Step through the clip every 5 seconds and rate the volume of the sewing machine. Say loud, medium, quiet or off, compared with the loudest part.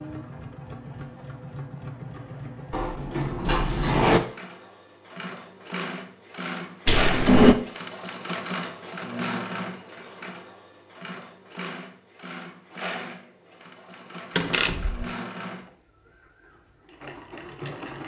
medium, loud, medium, medium.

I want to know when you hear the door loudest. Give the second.
7 s.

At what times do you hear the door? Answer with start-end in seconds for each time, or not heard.
2.7-4.2, 6.8-7.5, 14.3-15.1.